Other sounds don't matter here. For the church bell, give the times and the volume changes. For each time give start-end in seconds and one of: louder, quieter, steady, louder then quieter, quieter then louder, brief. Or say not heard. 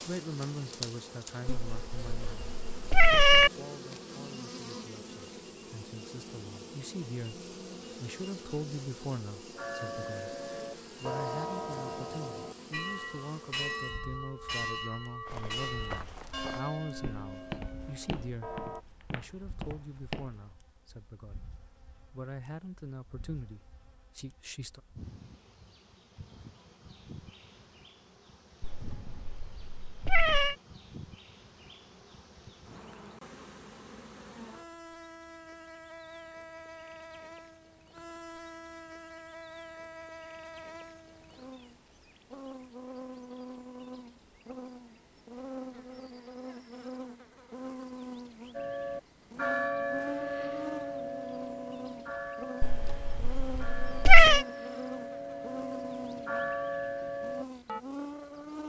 9.6-18.9 quieter
48.5-57.8 quieter then louder.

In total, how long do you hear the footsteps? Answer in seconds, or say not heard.
5 s.